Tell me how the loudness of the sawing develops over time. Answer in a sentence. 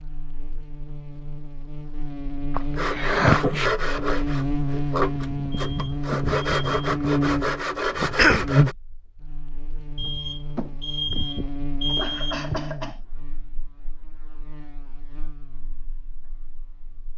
The volume of the sawing goes down, then up.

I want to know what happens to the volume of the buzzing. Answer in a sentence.
The loudness of the buzzing goes up, then down.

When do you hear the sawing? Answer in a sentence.
The sawing can be heard from 2.8 to 8.8 s.